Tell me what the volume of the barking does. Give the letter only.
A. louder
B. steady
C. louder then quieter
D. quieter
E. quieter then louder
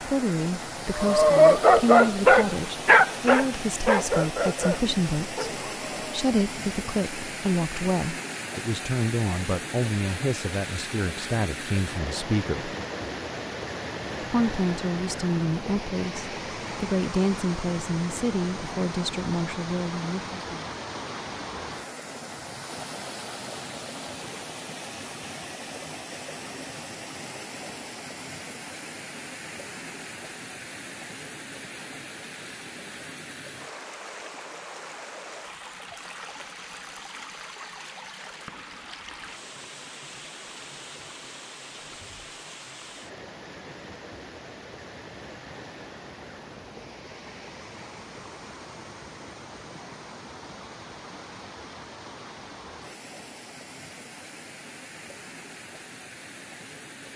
D.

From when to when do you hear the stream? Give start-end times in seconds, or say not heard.
0.0-57.1.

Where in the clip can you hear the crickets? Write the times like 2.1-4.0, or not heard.
not heard.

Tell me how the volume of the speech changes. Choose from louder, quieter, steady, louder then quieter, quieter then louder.
steady.